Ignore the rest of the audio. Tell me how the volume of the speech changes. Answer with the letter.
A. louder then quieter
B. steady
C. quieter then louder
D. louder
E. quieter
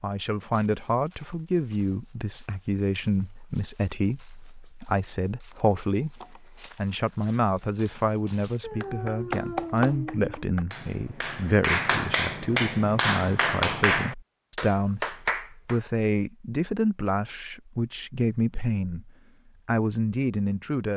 B.